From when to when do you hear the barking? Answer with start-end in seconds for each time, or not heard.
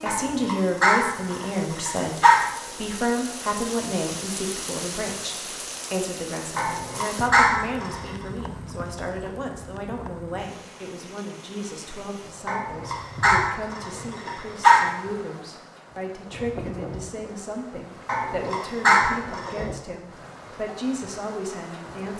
0.1-2.5, 6.5-8.2, 12.4-14.9, 18.1-19.6.